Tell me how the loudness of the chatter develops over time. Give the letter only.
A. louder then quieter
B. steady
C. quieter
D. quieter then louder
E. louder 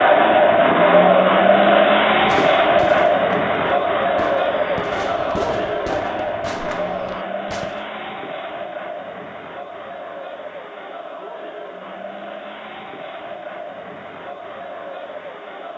C.